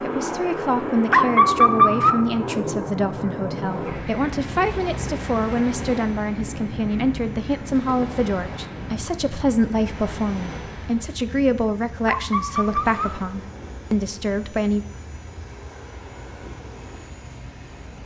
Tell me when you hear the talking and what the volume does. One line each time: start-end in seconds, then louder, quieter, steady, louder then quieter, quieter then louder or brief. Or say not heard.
0.0-14.8 steady.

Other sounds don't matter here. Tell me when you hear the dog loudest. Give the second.
2 s.